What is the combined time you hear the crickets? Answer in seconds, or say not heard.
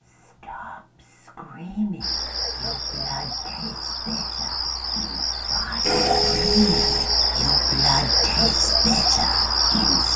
8 s.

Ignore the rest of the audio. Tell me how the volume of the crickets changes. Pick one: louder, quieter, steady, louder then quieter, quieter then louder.
louder.